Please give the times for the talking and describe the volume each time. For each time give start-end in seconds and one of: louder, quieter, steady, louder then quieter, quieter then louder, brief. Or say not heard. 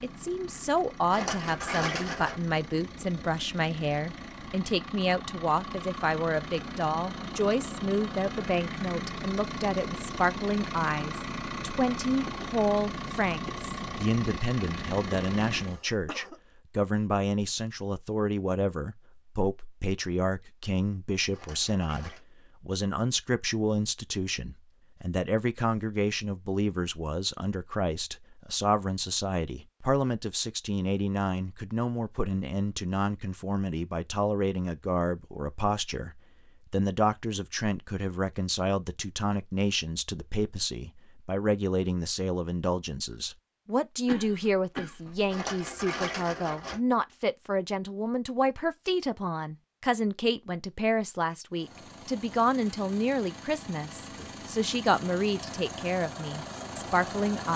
0.0-57.5 steady.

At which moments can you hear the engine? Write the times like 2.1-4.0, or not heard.
0.0-15.8, 51.5-57.5.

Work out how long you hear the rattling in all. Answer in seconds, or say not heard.
4 s.